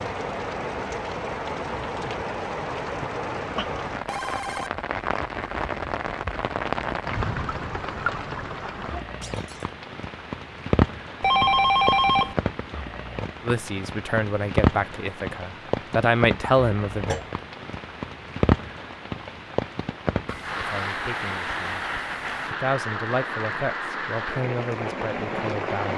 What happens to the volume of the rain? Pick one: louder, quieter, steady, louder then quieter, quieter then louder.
steady.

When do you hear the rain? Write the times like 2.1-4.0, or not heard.
0.0-25.9.